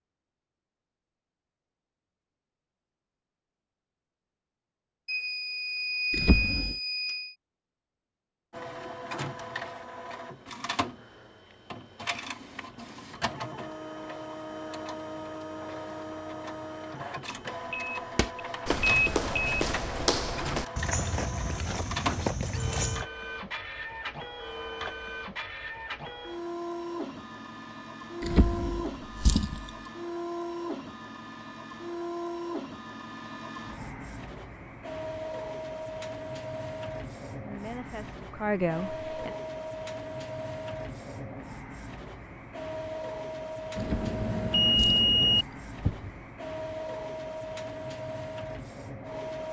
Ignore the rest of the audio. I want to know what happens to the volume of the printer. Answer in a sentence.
The loudness of the printer stays about the same.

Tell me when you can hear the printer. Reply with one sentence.
The printer can be heard from 8.5 to 49.4 s.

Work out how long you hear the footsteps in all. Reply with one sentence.
You can hear the footsteps for 5 seconds altogether.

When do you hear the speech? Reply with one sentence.
You can hear the speech from 37.4 to 39.3 s.